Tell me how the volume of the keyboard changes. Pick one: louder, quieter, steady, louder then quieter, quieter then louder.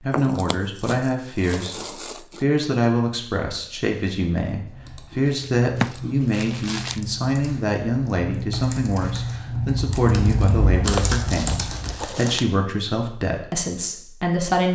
louder.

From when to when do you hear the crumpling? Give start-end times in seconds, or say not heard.
0.1-2.5, 5.2-7.0, 10.8-12.4.